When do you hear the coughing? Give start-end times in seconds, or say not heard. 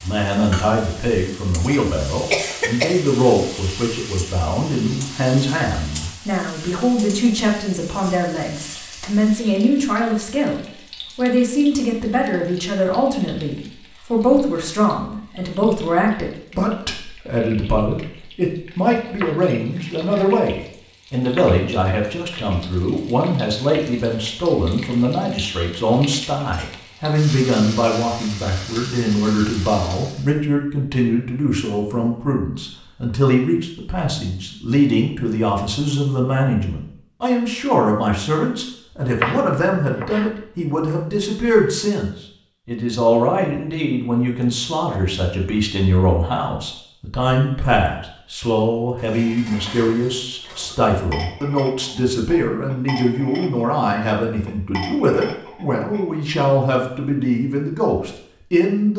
2.3-3.0.